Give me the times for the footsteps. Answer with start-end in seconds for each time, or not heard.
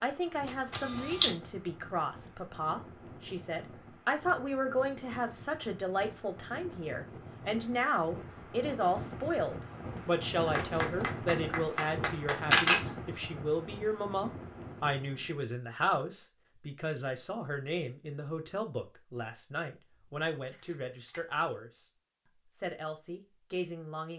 not heard.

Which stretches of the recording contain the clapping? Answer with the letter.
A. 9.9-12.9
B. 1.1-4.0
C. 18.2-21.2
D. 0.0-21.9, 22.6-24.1
A.